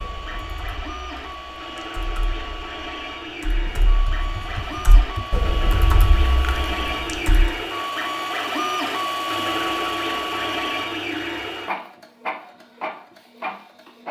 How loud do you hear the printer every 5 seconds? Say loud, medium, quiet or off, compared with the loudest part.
medium, loud, loud.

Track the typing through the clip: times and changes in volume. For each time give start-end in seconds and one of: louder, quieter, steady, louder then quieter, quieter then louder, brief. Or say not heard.
0.0-7.5 louder.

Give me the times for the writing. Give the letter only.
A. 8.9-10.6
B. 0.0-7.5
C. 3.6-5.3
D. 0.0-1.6
C.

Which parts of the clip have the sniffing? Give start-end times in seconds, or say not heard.
not heard.